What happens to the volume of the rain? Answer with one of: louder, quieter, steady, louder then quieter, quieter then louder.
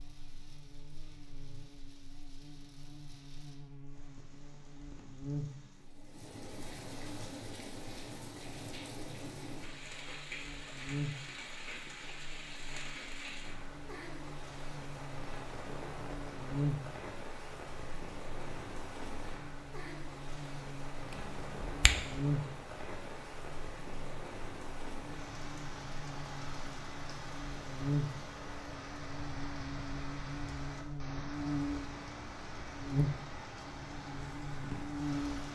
louder.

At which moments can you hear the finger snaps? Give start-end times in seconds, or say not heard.
21.1-22.1.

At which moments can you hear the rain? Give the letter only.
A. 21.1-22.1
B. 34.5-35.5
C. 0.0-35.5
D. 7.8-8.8
C.